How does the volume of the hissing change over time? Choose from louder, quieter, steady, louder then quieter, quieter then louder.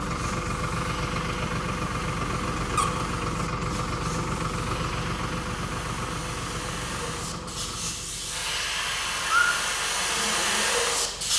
louder.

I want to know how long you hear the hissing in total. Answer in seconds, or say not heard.
11 s.